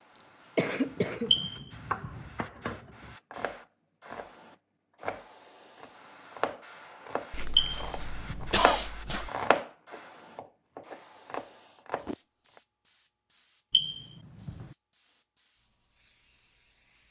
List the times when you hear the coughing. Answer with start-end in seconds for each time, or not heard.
0.6-1.4, 7.3-9.3, 11.9-12.5.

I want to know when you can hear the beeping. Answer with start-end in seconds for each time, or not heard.
1.3-2.2, 7.5-8.5, 13.7-14.7.